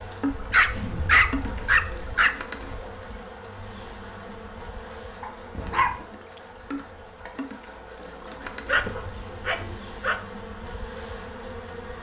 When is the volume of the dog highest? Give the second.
1 s.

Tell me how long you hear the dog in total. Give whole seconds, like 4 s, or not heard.
4 s.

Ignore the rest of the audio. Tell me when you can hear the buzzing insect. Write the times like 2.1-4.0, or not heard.
0.0-11.9.